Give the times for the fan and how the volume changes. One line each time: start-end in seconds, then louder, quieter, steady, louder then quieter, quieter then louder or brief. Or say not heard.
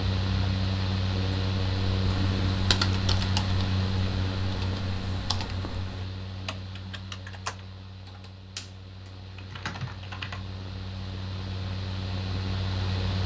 0.0-13.2 quieter then louder.